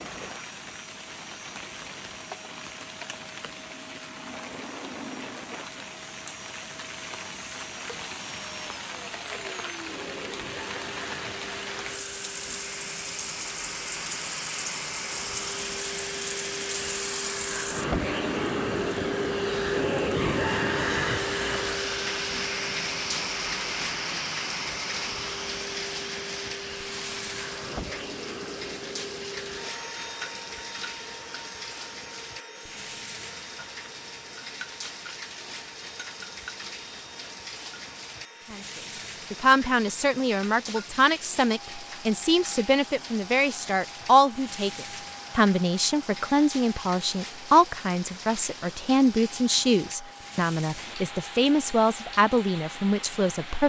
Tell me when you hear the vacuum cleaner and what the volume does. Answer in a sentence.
The vacuum cleaner can be heard from 0.0 to 53.6 s, getting louder then quieter.